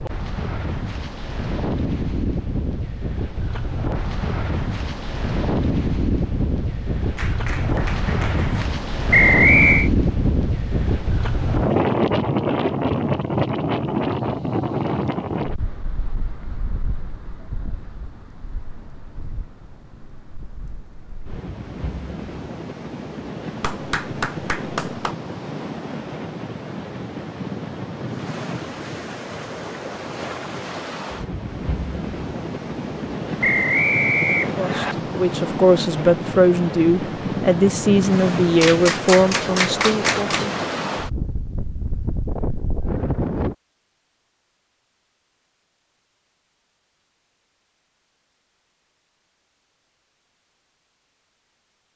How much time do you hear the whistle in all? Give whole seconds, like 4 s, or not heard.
2 s.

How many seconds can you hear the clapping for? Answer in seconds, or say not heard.
5 s.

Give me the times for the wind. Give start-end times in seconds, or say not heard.
0.0-43.5.